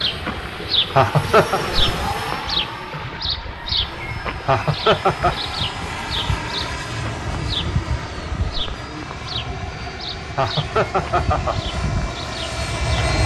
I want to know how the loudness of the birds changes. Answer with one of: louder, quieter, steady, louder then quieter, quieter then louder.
quieter.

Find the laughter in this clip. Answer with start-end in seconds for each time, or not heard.
0.9-1.6, 4.5-5.3, 10.3-11.6.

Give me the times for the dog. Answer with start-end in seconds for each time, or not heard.
not heard.